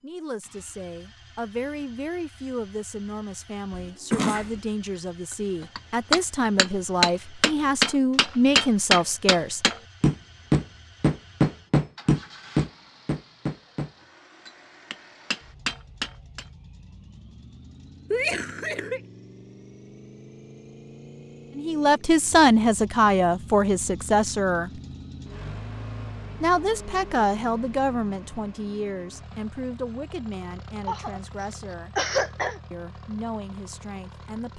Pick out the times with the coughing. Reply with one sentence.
You can hear the coughing from 3.7 to 4.6 s, from 18.1 to 19.0 s and from 30.9 to 32.6 s.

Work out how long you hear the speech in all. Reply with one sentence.
You can hear the speech for 20 seconds altogether.